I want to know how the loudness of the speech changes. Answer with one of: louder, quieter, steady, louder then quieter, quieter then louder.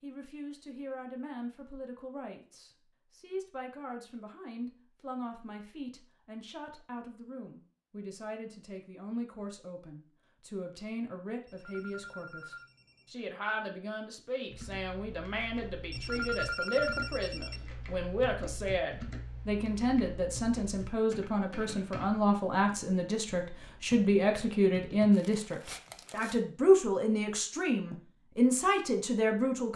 louder.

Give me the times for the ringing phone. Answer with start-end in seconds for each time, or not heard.
11.4-13.2, 15.9-17.6.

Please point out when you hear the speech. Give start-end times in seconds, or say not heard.
0.0-29.7.